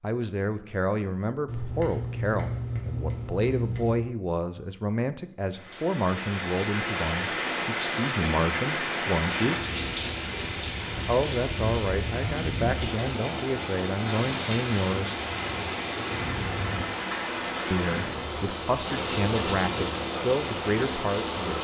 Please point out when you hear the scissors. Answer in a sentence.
You can hear the scissors from 1.4 to 4.0 s, from 9.3 to 10.2 s and from 19.1 to 19.9 s.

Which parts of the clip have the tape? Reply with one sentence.
You can't hear the tape here.